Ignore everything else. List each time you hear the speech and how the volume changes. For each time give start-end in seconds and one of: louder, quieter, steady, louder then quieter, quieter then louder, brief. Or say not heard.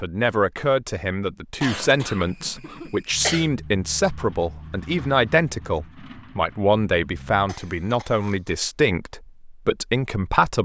0.0-10.6 steady.